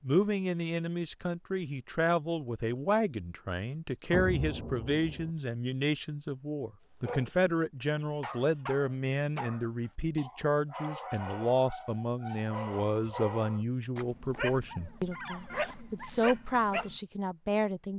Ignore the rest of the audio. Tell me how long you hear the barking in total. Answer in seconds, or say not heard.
10 s.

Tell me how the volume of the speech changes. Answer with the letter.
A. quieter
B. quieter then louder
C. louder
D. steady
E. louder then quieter
D.